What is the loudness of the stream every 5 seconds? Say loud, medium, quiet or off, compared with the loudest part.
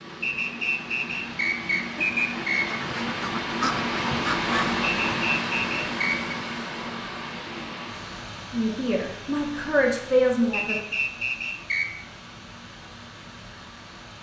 loud, loud, quiet.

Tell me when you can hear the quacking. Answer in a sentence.
You can hear the quacking from 1.9 to 4.8 s.